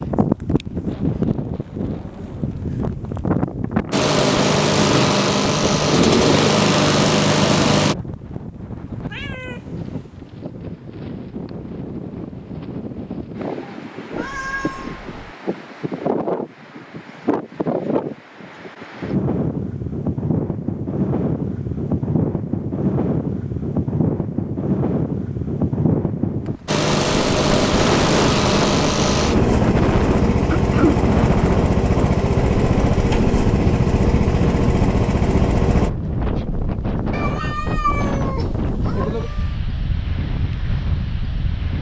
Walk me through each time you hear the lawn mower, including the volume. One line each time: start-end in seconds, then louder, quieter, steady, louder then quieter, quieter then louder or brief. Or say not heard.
3.9-8.0 steady
26.6-35.9 steady.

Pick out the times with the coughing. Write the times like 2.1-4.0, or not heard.
30.5-31.0.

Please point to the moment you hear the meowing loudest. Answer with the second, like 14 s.
38 s.